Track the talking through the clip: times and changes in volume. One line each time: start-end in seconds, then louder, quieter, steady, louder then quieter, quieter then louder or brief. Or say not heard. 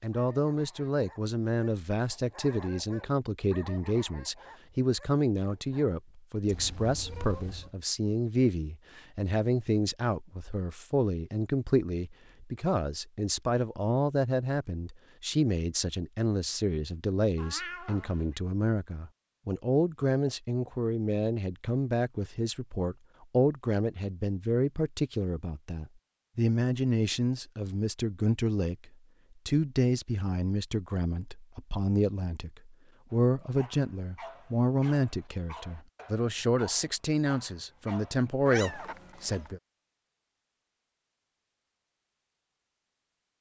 0.0-39.6 steady.